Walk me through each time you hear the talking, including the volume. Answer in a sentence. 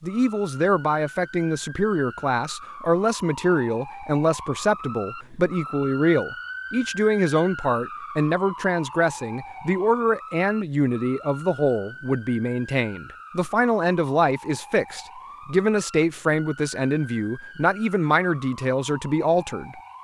The talking can be heard from 0.0 to 19.8 s, at a steady volume.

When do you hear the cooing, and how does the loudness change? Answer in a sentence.
The cooing can't be heard in this clip.